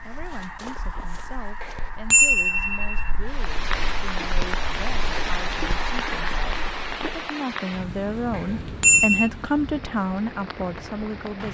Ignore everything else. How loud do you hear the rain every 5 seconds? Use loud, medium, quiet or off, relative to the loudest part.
loud, loud, medium.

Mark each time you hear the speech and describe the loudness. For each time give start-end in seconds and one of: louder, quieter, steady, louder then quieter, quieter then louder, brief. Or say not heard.
0.0-11.4 louder.